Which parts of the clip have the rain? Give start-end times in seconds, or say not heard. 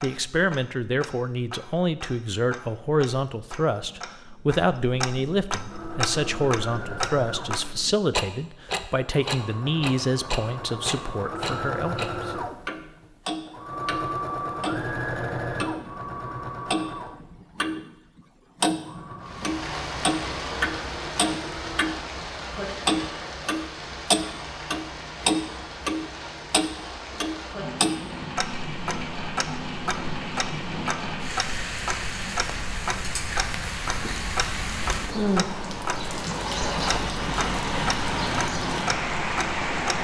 19.2-39.9.